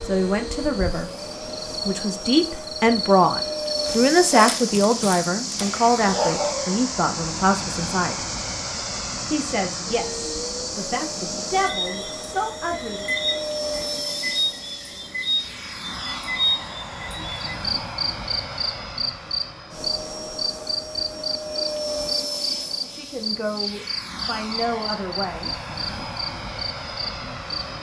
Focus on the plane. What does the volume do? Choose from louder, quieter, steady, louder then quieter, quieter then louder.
steady.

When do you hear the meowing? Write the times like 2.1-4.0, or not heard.
not heard.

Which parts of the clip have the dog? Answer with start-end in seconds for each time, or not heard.
3.8-6.8.